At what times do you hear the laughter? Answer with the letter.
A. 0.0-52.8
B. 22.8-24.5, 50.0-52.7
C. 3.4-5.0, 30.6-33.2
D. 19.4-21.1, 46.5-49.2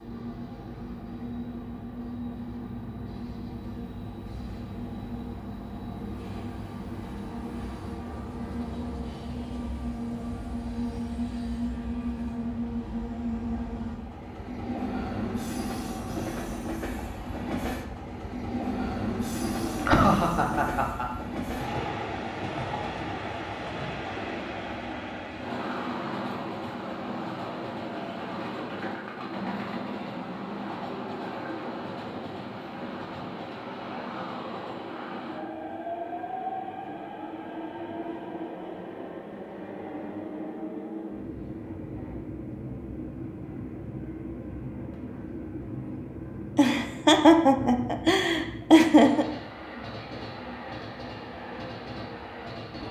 D.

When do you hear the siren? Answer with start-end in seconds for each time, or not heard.
not heard.